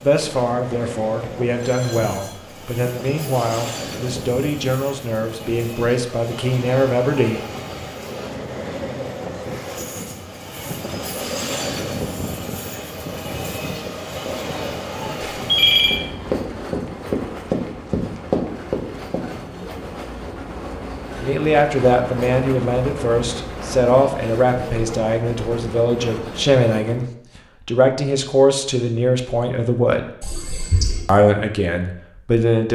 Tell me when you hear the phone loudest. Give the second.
16 s.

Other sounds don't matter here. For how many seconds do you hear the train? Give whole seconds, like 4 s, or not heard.
27 s.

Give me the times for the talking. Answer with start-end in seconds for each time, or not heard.
0.0-7.5, 21.1-27.1, 27.6-30.1, 31.1-32.7.